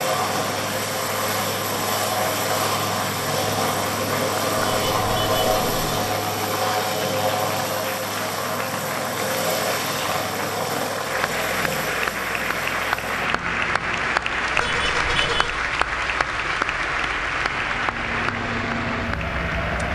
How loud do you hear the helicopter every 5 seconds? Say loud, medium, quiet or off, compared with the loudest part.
loud, loud, medium, medium.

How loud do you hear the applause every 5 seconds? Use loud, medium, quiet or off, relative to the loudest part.
medium, medium, loud, loud.